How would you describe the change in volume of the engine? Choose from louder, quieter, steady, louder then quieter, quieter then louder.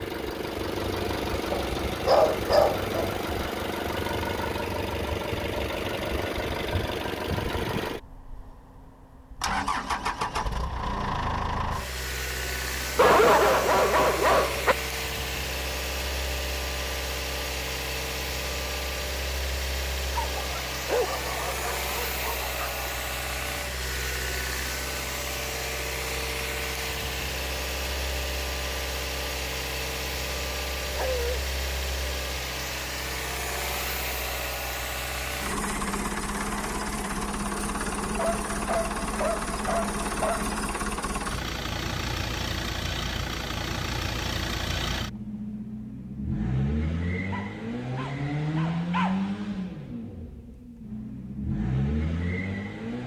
steady.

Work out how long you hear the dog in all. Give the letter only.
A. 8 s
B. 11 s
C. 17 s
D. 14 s
B.